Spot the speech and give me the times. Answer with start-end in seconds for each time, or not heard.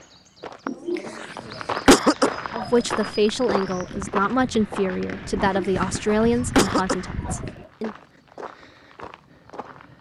2.5-8.0.